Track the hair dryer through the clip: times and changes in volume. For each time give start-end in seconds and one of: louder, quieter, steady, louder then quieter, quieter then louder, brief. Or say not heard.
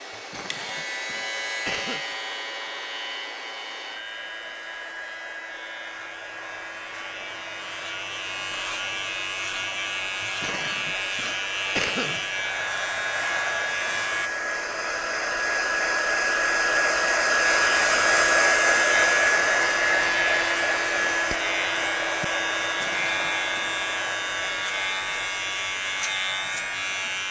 0.0-27.2 louder then quieter.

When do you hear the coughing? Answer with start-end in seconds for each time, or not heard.
0.1-2.0, 10.2-12.2, 22.6-23.8.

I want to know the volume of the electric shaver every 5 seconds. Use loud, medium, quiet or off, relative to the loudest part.
medium, medium, loud, loud, loud, loud.